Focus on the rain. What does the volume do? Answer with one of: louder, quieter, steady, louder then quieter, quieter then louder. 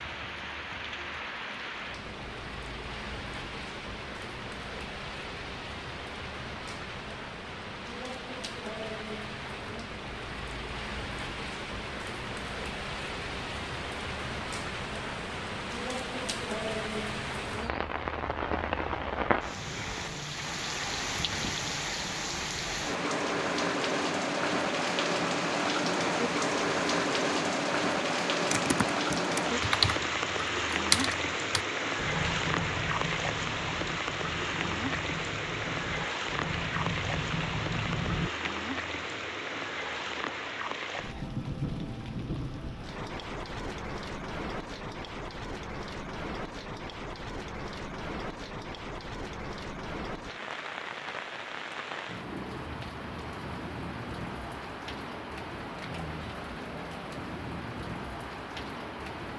louder then quieter.